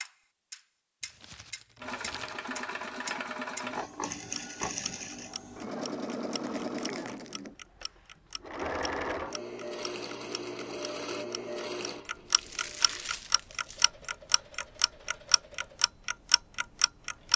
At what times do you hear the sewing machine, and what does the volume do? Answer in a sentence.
You can hear the sewing machine from 1.8 to 17.3 s, getting quieter.